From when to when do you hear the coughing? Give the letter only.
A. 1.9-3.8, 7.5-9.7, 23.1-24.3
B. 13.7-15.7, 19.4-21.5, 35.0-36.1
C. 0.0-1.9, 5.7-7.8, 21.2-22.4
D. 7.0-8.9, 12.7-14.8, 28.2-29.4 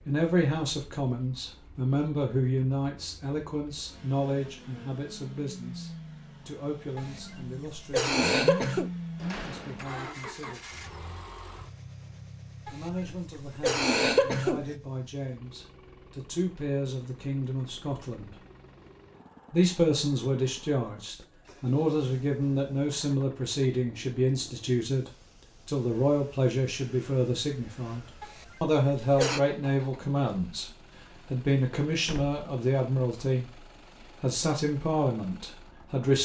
D.